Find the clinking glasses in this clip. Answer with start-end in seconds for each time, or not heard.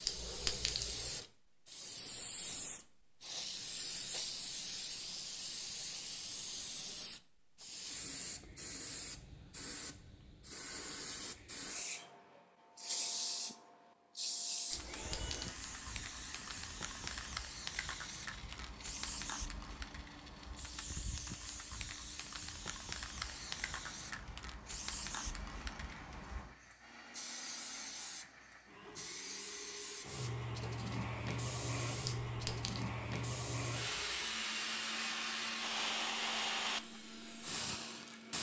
0.1-1.0, 14.9-15.7, 32.0-32.9.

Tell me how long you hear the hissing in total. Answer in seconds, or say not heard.
38 s.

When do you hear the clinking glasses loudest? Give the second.
1 s.